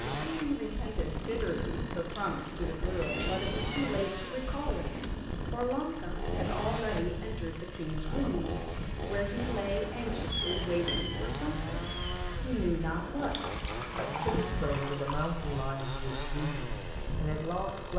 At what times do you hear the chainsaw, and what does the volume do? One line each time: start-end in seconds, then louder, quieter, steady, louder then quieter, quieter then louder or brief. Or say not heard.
0.0-17.9 steady.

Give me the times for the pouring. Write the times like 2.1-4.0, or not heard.
2.1-2.5, 13.2-15.3.